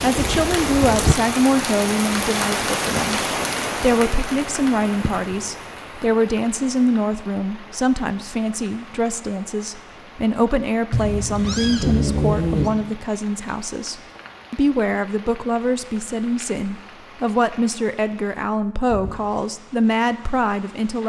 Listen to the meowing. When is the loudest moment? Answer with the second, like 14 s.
12 s.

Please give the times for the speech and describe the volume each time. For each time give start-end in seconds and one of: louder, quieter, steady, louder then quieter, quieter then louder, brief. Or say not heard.
0.0-21.0 steady.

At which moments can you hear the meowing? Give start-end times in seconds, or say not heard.
10.9-12.7.